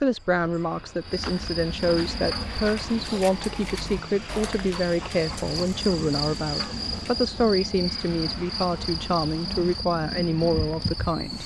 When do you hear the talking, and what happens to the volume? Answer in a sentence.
The talking can be heard from 0.0 to 11.4 s, at a steady volume.